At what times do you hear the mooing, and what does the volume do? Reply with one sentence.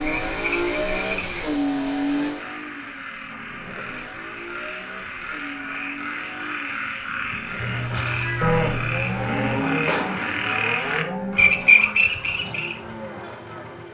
The mooing can be heard from 7.7 to 13.8 s, getting quieter.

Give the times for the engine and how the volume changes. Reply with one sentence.
You can hear the engine from 0.0 to 13.8 s, getting quieter.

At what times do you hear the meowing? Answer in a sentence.
The meowing can be heard from 7.5 to 9.6 s.